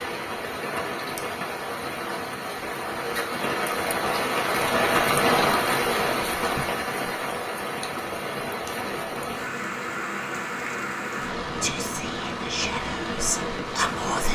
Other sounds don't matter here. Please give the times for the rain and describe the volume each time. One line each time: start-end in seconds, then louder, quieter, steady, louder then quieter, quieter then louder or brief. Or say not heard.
0.0-14.2 louder then quieter.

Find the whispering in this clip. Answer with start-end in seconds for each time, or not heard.
11.6-14.2.